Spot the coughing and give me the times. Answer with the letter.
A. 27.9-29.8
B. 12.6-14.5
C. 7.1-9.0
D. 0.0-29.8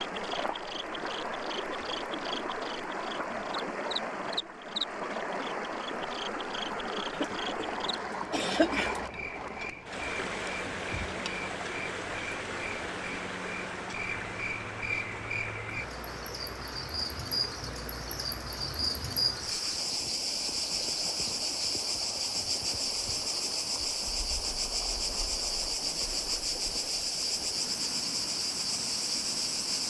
C.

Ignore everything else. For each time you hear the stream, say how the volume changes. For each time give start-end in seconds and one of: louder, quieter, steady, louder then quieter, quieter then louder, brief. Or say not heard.
0.0-29.8 quieter.